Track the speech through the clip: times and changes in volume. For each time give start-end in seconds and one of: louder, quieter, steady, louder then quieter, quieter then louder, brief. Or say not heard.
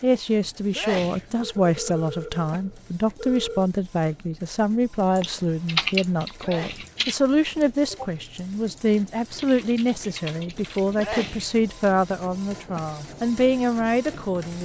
0.0-14.5 steady.